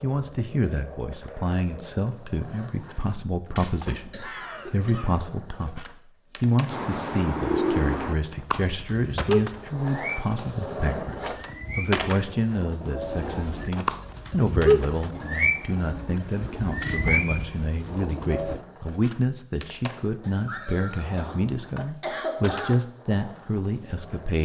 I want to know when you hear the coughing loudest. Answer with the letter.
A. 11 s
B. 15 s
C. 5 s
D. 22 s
D.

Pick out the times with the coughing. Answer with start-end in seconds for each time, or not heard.
4.1-5.2, 20.2-22.8.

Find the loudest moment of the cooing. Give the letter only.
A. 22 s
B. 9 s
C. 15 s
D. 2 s
C.